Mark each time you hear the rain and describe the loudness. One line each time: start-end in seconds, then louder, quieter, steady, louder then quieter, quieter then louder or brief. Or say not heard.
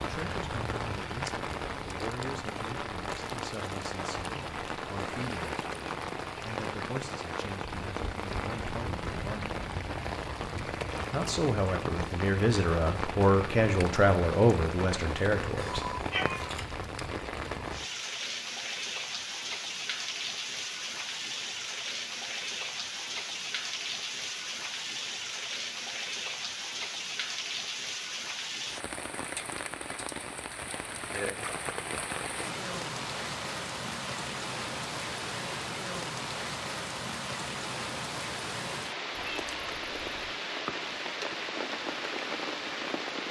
0.0-43.2 steady.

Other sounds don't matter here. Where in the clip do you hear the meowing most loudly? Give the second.
16 s.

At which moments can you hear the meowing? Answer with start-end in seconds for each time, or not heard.
15.6-16.9, 39.1-40.4.